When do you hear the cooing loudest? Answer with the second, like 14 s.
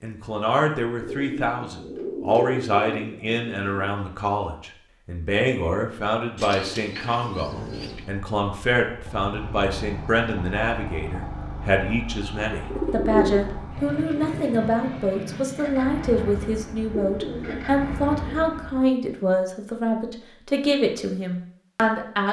13 s.